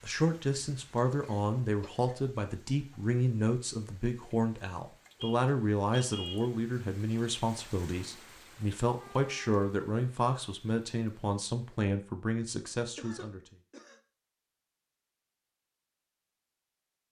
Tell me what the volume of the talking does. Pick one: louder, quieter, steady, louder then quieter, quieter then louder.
steady.